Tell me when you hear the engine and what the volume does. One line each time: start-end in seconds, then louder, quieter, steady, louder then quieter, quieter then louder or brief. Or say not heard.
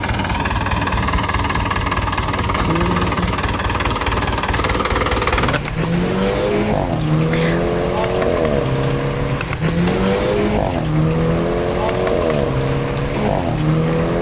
0.0-14.1 steady.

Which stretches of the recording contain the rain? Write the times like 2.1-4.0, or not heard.
5.2-14.1.